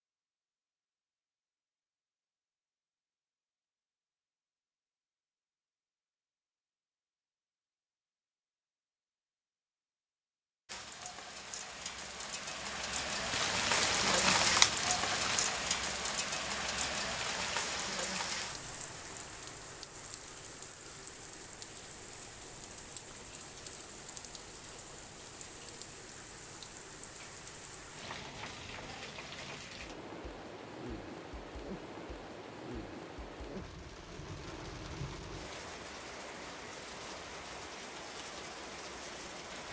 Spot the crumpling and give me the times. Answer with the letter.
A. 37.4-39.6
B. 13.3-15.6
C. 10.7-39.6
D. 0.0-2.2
B.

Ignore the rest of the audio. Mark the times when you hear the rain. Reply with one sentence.
The rain can be heard from 10.7 to 39.6 s.